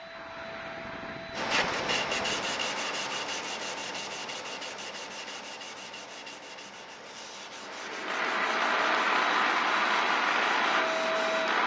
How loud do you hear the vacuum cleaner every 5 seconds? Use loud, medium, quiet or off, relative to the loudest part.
quiet, loud, loud.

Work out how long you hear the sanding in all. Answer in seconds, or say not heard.
10 s.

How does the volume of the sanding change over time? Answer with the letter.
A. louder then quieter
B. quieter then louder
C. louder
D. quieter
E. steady
D.